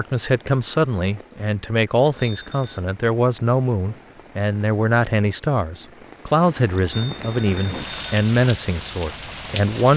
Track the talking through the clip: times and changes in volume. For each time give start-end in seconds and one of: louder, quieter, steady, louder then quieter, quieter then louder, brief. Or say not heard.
0.0-9.9 steady.